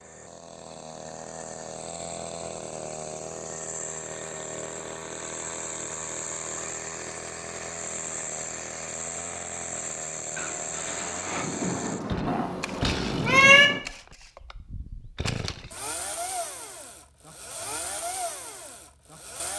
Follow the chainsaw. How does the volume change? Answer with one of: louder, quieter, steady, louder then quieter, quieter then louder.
steady.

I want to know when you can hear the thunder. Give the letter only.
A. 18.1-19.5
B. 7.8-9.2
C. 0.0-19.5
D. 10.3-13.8
D.